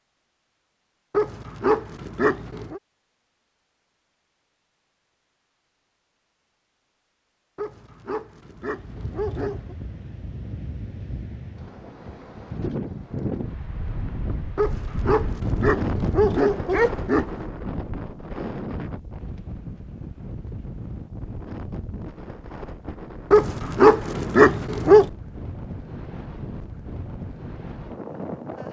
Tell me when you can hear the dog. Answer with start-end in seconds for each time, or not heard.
1.1-2.8, 7.5-9.8, 14.6-17.5, 23.3-25.1.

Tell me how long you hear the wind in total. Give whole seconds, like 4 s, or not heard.
20 s.